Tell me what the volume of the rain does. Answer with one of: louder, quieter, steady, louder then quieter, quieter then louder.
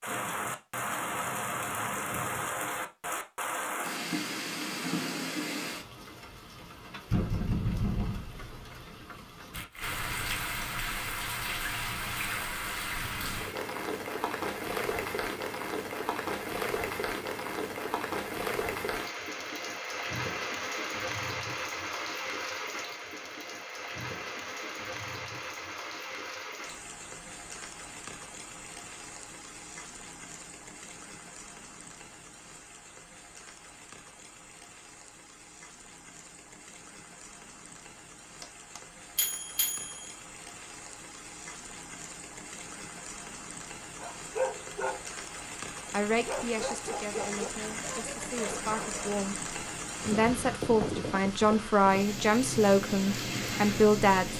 quieter then louder.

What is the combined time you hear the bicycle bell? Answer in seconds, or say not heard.
2 s.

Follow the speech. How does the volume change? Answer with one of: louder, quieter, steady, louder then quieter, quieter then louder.
louder.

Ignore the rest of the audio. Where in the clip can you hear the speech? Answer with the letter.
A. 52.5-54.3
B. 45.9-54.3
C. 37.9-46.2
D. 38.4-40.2
B.